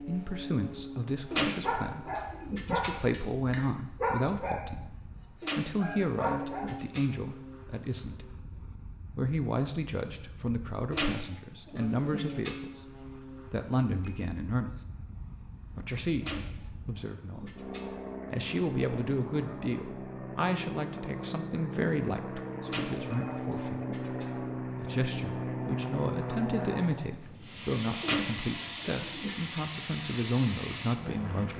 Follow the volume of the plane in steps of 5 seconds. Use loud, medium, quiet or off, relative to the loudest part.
medium, medium, medium, medium, loud, loud, loud.